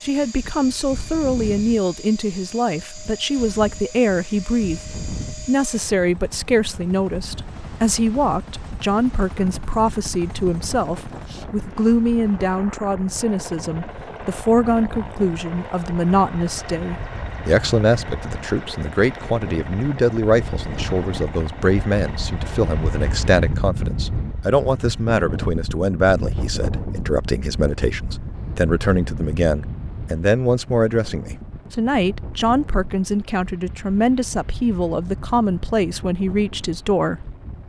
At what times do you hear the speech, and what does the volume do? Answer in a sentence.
You can hear the speech from 0.0 to 37.3 s, at a steady volume.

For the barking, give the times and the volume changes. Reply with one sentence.
You can't hear the barking here.